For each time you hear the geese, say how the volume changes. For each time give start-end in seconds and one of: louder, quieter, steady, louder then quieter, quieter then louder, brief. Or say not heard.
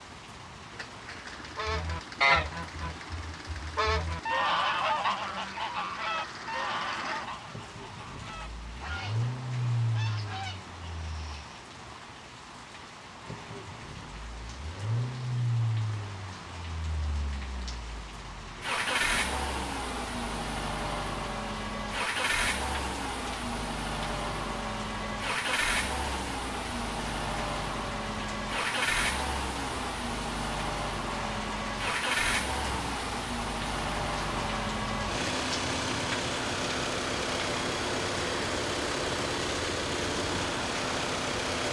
1.6-11.5 quieter.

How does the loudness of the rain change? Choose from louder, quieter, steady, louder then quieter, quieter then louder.
louder.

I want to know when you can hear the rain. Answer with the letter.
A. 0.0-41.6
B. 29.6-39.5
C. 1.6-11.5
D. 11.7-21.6
A.